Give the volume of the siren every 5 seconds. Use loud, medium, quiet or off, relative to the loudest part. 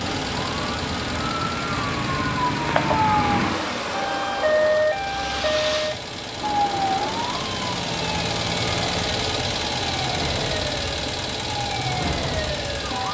loud, loud, medium.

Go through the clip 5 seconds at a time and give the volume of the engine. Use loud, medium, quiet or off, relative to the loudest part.
medium, loud, loud.